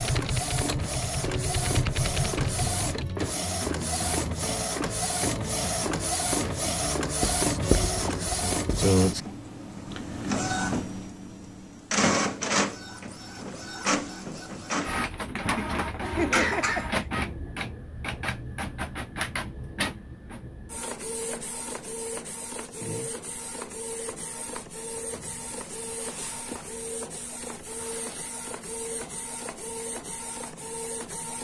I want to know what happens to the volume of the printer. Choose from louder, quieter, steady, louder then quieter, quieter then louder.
quieter.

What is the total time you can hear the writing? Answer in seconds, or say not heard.
2 s.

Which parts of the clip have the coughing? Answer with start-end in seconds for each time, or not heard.
15.4-17.1.